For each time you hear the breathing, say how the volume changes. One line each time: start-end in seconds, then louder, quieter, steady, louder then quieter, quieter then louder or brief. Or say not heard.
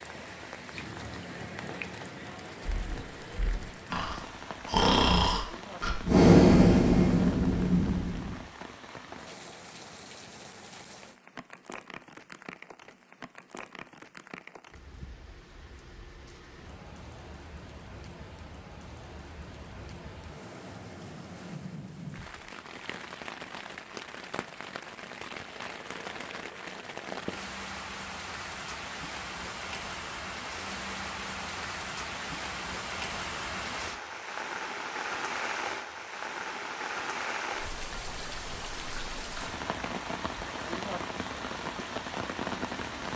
2.6-8.3 louder then quieter.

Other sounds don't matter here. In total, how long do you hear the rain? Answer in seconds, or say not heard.
43 s.